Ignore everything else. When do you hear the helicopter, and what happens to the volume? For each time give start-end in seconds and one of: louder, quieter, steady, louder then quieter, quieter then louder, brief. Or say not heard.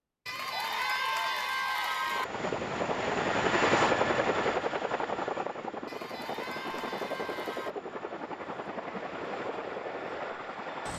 2.0-10.9 quieter.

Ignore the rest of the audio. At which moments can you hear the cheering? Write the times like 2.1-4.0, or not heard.
0.2-2.2, 5.8-7.8.